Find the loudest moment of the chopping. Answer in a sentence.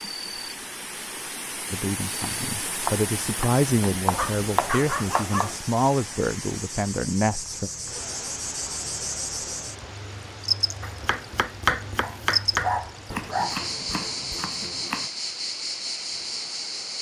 The volume of the chopping peaks at 12 seconds.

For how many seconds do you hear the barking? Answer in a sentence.
The barking can be heard for 3 seconds in total.